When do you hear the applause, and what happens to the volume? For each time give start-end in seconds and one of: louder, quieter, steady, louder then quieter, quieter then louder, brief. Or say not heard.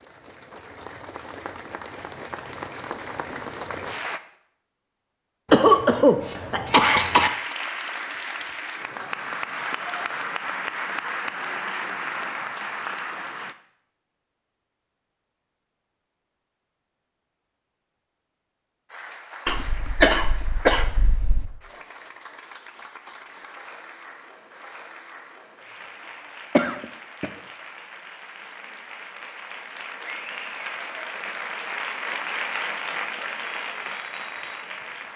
0.0-4.2 louder
6.9-13.6 steady
18.9-35.1 louder.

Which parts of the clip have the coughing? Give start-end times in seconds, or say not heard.
5.5-7.3, 19.4-21.4, 26.6-27.4.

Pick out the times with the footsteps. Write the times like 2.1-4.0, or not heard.
not heard.